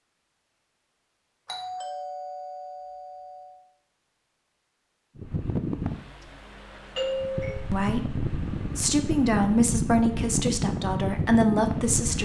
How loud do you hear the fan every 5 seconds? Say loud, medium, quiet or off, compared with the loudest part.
off, loud, loud.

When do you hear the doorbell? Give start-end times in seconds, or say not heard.
1.4-3.5, 7.0-7.7.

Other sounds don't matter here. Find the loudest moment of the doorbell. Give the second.
7 s.